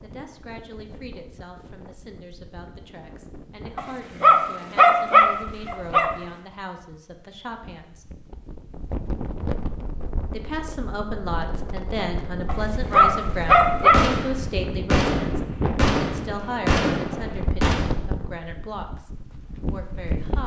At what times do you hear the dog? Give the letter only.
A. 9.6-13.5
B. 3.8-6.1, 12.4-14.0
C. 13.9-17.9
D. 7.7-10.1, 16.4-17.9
B.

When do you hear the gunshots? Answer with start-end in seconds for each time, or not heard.
13.9-17.9.